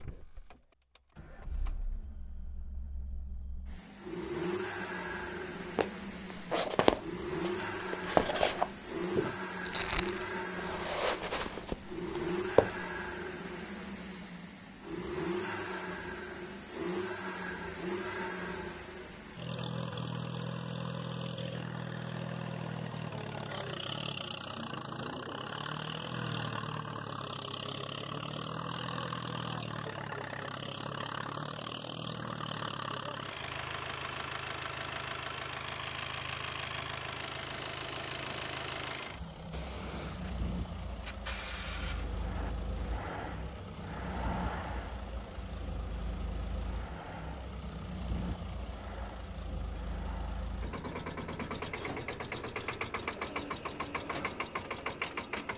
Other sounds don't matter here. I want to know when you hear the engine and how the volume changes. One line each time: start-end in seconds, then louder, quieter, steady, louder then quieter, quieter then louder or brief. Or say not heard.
0.0-55.5 steady.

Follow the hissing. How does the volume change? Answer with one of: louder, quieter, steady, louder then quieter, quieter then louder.
quieter.